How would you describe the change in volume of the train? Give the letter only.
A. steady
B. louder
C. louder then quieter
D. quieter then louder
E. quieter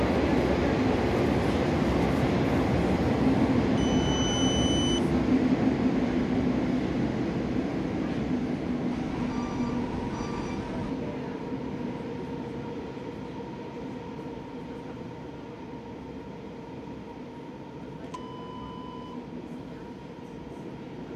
E.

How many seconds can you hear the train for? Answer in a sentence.
You can hear the train for 21 seconds altogether.